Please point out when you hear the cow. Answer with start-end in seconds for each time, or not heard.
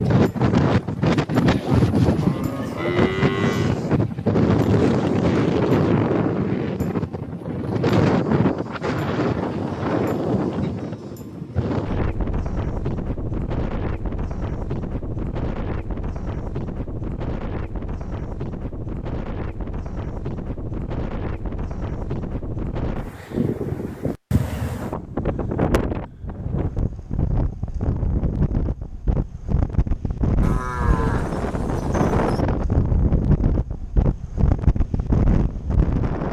2.2-3.8, 30.4-32.5.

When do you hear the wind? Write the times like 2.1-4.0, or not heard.
0.0-36.2.